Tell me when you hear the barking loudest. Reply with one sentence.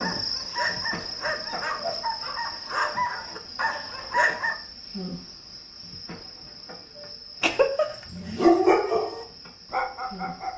The loudest moment of the barking is at 9 seconds.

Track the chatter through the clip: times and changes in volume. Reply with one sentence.
The chatter can't be heard in this clip.